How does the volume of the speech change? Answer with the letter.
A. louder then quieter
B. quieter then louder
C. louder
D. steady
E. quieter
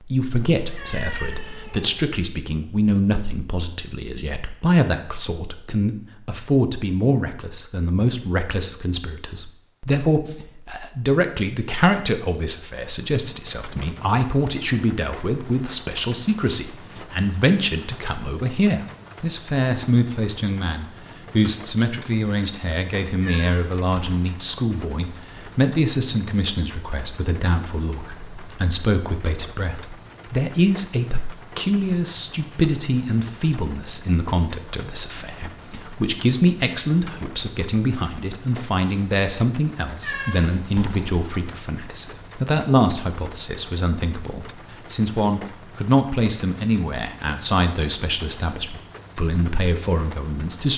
D.